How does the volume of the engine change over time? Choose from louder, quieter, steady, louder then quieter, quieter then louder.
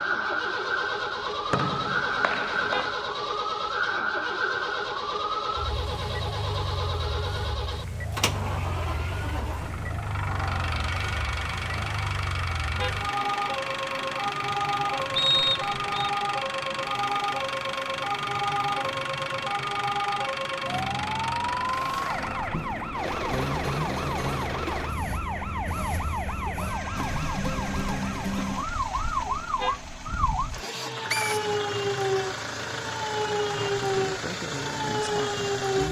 steady.